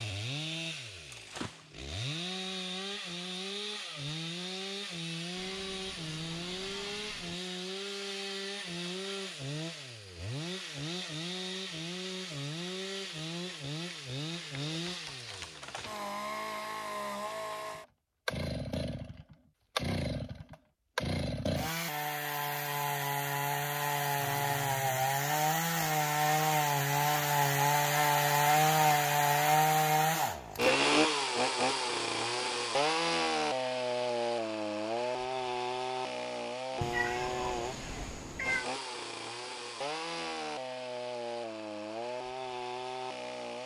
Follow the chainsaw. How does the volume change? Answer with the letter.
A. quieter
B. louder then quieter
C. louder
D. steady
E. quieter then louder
B.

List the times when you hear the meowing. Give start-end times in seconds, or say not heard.
5.3-7.4, 24.2-24.9, 36.8-38.6.